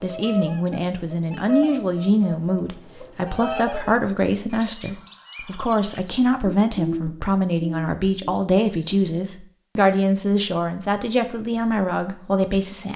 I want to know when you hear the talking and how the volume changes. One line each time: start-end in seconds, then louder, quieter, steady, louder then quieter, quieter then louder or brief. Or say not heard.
0.0-12.9 steady.